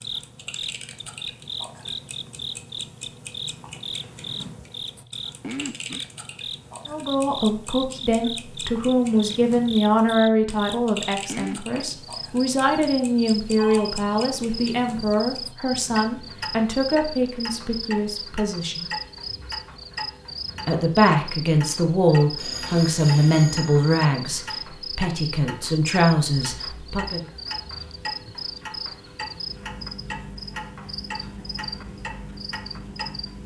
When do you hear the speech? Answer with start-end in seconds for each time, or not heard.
6.8-18.9, 20.6-27.2.